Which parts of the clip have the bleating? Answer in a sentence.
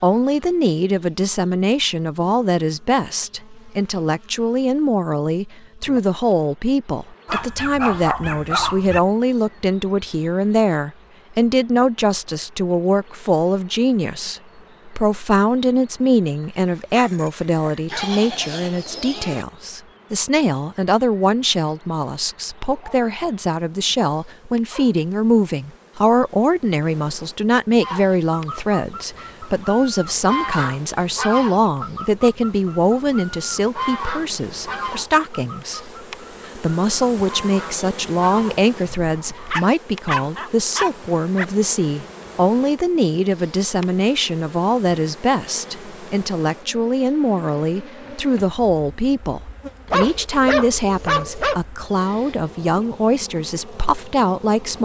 The bleating can be heard from 17.9 to 19.4 s.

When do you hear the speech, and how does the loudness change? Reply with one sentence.
The speech can be heard from 0.0 to 54.7 s, at a steady volume.